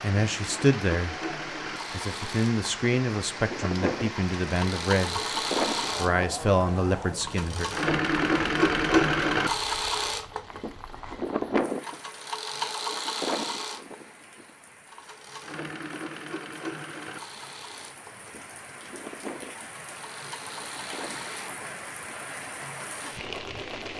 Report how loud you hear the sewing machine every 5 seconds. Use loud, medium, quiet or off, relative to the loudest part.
medium, loud, medium, quiet, quiet.